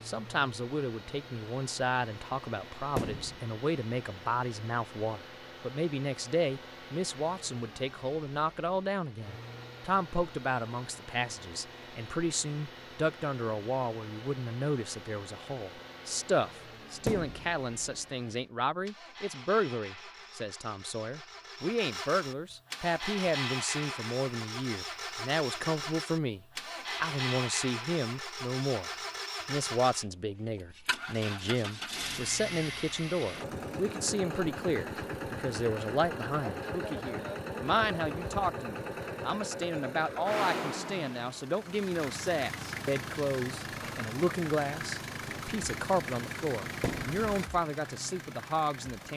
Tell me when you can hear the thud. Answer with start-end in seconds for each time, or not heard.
3.0-3.4, 17.1-17.5, 46.8-47.2.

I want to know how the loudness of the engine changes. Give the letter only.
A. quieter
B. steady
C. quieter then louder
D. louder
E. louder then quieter
D.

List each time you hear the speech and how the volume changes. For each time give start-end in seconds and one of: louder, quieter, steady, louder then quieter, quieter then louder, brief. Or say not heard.
0.1-49.1 steady.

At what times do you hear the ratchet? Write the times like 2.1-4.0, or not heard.
not heard.